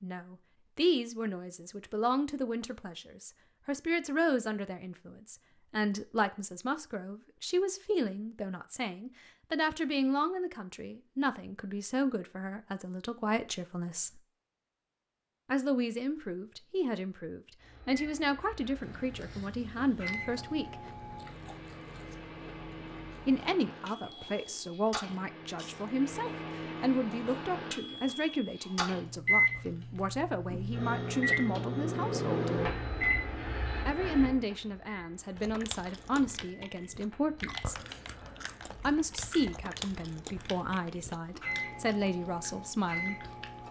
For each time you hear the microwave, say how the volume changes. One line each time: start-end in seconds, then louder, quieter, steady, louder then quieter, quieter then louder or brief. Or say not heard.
17.6-43.6 louder then quieter.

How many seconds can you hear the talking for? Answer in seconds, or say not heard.
37 s.